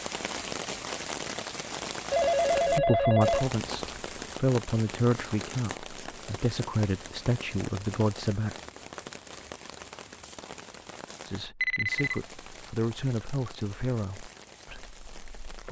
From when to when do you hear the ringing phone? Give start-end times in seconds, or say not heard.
2.1-4.0, 11.6-12.2.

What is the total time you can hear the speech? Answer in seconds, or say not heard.
10 s.